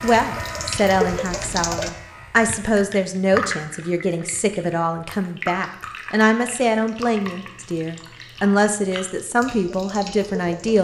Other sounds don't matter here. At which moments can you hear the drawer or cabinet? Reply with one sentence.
The drawer or cabinet can't be heard in this clip.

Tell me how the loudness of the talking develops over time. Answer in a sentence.
The volume of the talking stays about the same.